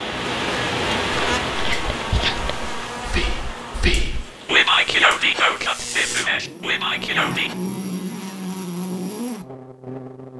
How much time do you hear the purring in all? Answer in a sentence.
You can't hear the purring here.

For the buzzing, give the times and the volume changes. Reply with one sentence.
You can hear the buzzing from 0.1 to 10.3 s, getting quieter then louder.